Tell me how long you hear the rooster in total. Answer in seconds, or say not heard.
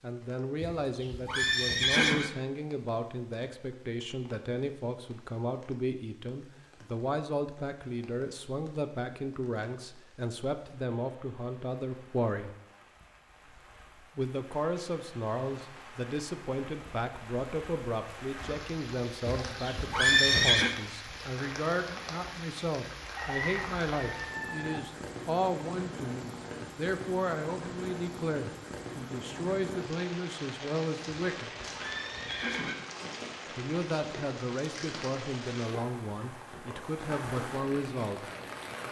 2 s.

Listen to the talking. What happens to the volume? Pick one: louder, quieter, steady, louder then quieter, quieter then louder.
steady.